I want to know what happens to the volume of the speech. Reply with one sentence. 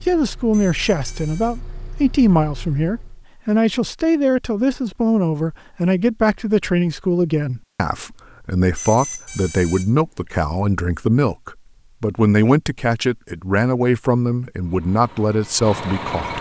The volume of the speech stays about the same.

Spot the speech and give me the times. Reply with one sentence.
You can hear the speech from 0.1 to 16.3 s.